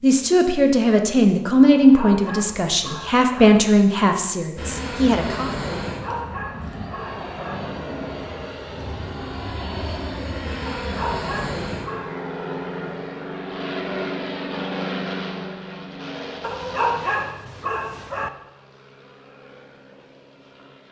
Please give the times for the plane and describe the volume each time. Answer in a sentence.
The plane can be heard from 4.5 to 20.8 s, getting quieter.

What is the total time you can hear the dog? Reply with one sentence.
The dog can be heard for 7 seconds in total.